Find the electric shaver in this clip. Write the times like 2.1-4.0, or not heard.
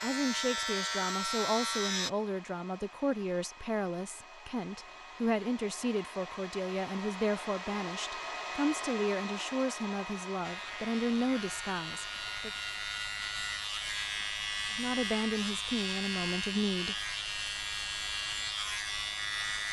0.0-2.1, 10.4-19.6.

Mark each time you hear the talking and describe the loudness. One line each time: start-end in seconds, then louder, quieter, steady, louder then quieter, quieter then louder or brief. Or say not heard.
0.0-12.5 steady
14.7-17.1 brief.